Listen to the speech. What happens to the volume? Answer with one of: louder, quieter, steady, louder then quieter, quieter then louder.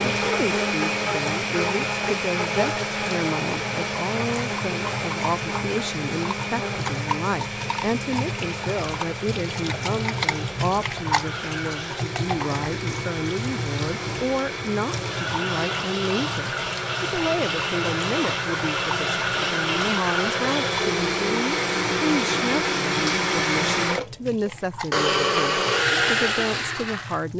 steady.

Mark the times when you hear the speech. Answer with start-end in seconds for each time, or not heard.
0.1-27.3.